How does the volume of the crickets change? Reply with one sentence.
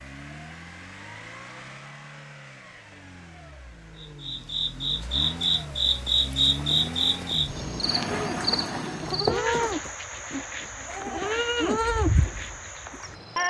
The volume of the crickets goes down.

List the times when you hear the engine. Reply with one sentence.
The engine can be heard from 0.0 to 9.3 s.